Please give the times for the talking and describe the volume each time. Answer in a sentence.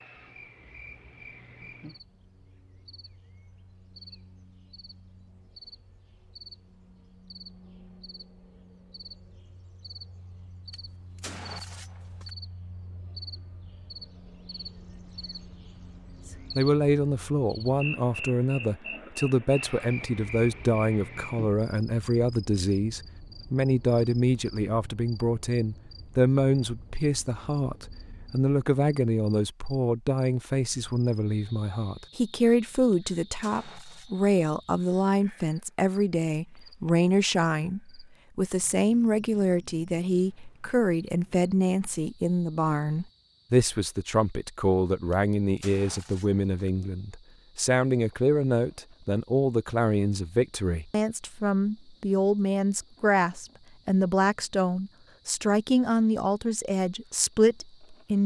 You can hear the talking from 16.6 to 58.2 s, at a steady volume.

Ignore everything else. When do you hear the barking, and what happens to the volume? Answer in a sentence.
You can't hear the barking here.